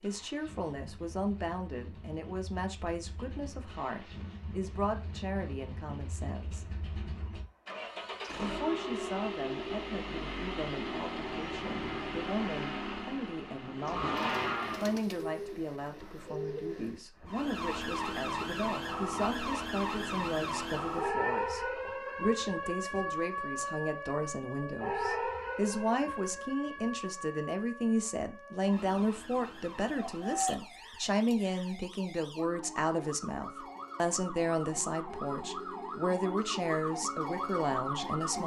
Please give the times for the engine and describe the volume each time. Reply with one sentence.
The engine can be heard from 0.0 to 15.0 s, getting louder.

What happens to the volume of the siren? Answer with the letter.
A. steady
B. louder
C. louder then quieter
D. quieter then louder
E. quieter
D.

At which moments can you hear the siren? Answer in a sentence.
You can hear the siren from 17.2 to 38.4 s.